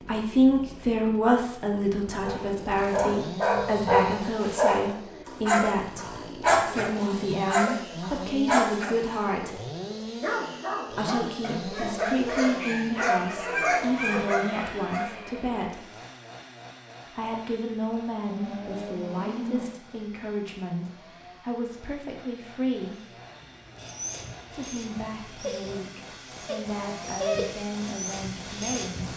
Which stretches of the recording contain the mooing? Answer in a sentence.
The mooing can be heard from 18.2 to 19.8 s.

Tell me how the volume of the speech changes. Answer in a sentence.
The loudness of the speech goes down.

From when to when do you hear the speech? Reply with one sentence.
The speech can be heard from 0.0 to 9.6 s, from 10.9 to 15.8 s, from 17.1 to 23.1 s and from 24.4 to 29.1 s.